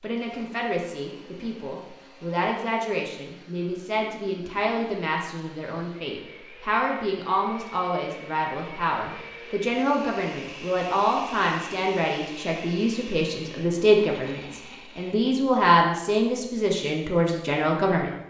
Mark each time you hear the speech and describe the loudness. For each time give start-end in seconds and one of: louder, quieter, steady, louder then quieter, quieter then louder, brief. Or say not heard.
0.0-18.1 louder.